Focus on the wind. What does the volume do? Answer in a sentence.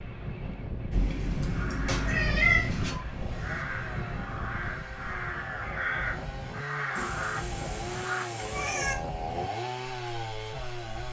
The loudness of the wind goes down.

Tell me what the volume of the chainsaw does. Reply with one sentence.
The volume of the chainsaw goes up.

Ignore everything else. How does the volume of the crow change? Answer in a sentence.
The loudness of the crow goes up.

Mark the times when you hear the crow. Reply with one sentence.
You can hear the crow from 1.4 to 8.2 s.